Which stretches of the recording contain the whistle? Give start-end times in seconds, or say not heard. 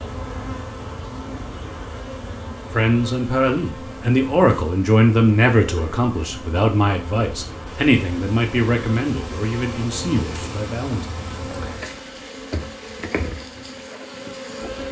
not heard.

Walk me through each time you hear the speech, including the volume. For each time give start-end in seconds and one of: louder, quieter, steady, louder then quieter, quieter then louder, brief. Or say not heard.
2.7-11.2 quieter.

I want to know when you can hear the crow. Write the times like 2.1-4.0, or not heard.
not heard.